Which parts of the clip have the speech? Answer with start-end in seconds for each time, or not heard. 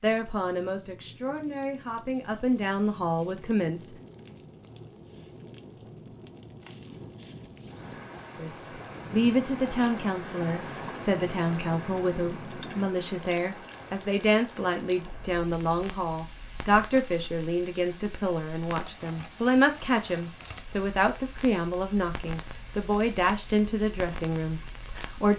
0.0-3.9, 8.3-25.3.